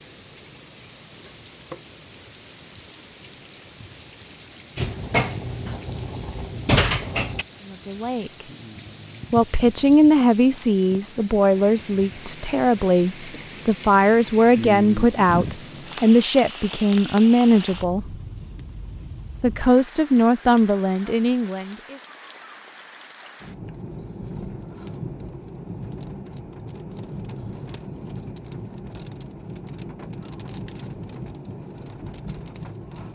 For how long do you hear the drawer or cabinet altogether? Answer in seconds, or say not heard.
3 s.